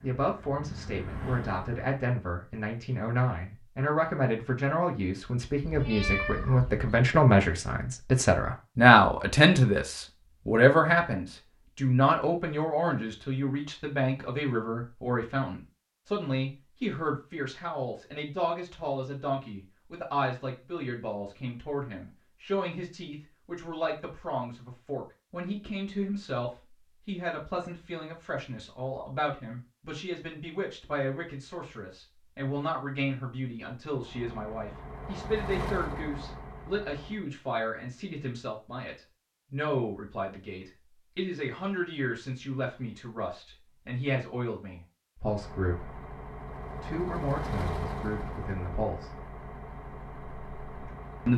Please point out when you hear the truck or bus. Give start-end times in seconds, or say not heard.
0.0-1.9, 33.9-37.2, 45.2-51.3.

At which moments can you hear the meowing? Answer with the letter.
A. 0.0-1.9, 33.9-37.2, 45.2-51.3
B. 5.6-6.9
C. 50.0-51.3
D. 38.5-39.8
B.